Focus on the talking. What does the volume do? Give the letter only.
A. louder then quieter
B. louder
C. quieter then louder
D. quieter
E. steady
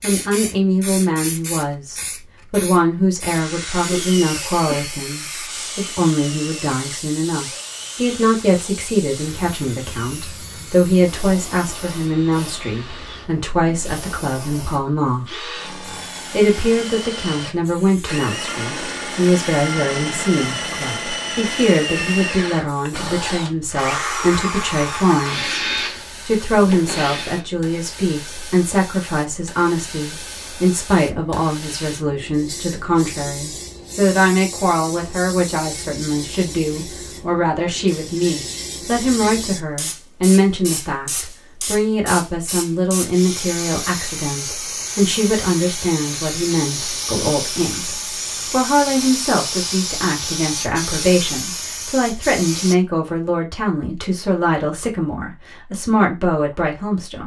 E.